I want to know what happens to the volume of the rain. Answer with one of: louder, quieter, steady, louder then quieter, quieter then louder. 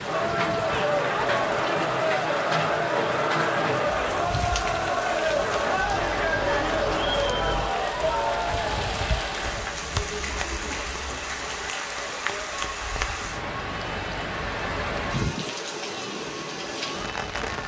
steady.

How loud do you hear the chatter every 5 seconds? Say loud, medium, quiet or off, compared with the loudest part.
loud, loud, quiet, quiet.